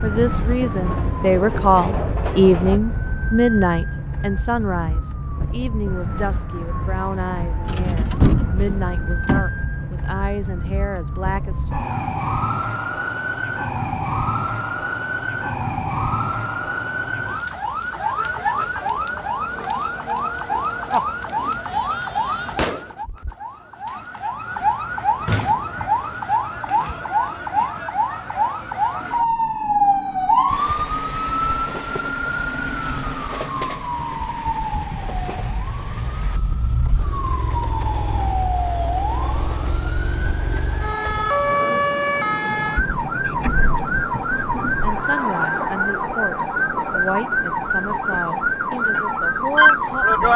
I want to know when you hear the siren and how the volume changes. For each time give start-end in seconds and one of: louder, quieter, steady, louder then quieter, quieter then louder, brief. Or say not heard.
0.0-50.3 louder.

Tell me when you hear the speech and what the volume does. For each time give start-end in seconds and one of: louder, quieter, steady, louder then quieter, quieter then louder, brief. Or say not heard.
0.0-11.7 quieter
44.8-50.3 steady.